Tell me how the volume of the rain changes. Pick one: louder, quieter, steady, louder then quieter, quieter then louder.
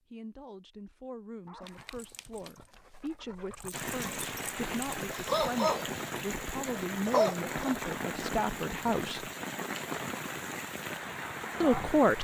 steady.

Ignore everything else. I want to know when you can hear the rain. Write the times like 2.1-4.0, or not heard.
3.7-12.1.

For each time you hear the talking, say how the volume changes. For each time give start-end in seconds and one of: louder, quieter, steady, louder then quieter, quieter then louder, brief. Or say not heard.
0.1-9.3 louder
11.6-12.1 brief.